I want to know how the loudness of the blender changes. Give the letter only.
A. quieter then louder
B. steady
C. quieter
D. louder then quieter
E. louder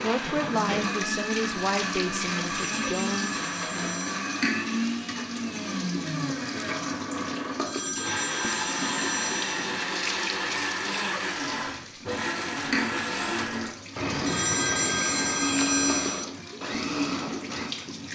B.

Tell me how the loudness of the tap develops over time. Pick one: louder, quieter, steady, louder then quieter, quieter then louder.
steady.